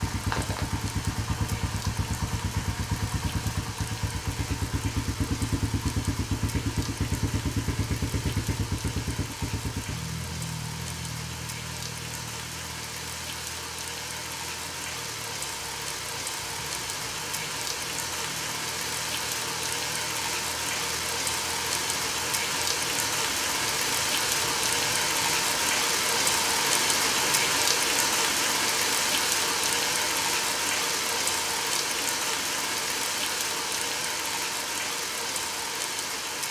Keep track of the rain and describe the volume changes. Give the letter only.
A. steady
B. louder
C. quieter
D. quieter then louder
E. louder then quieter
B.